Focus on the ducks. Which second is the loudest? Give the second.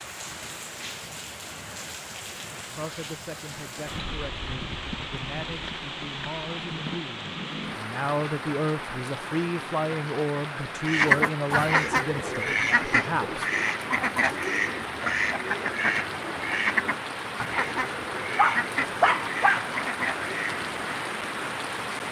11 s.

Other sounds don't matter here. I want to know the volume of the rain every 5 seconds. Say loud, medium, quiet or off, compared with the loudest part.
medium, loud, loud, loud, loud.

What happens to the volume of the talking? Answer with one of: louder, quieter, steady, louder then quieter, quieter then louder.
louder.